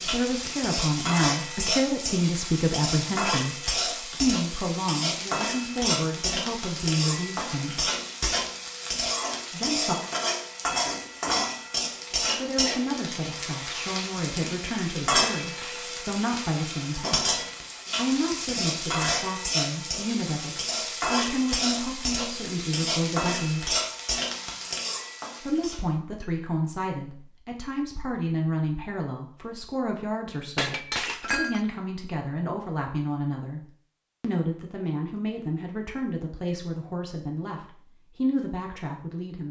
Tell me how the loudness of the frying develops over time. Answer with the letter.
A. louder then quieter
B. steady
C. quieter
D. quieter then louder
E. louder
B.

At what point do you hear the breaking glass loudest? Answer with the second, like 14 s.
31 s.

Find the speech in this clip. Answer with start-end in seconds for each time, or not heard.
0.0-7.9, 9.5-9.9, 12.3-17.3, 17.9-23.8, 25.4-39.4.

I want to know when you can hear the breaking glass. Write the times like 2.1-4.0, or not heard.
15.4-15.9, 30.6-31.6.